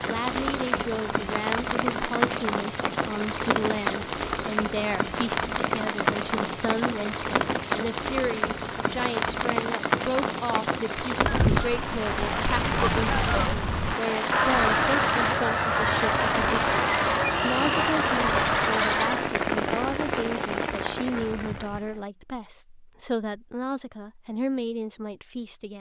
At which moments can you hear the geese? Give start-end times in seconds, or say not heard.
11.2-19.4.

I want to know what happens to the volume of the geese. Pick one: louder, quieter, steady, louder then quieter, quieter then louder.
louder.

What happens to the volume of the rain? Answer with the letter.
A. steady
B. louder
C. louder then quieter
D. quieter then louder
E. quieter
A.